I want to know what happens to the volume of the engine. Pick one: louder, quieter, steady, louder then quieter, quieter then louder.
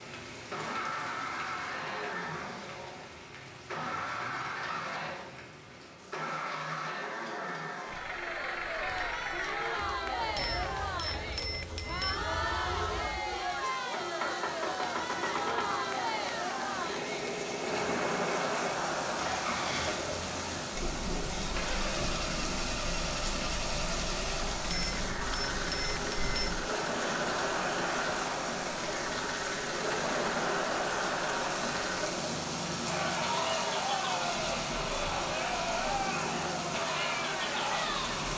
steady.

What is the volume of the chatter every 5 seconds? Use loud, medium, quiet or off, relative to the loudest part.
off, loud, loud, loud, medium, loud, loud, loud.